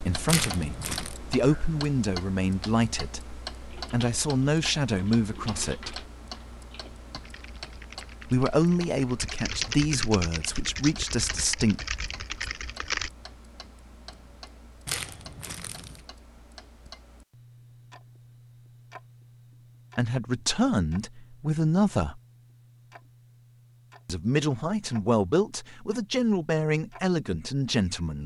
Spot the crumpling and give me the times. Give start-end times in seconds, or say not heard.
0.2-1.1, 14.8-16.1.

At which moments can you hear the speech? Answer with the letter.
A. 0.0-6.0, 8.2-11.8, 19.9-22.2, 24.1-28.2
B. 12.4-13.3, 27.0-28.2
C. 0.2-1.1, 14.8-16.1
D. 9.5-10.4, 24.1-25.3
A.